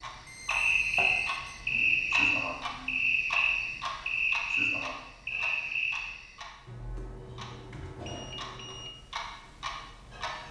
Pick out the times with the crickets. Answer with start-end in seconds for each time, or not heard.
0.5-6.4.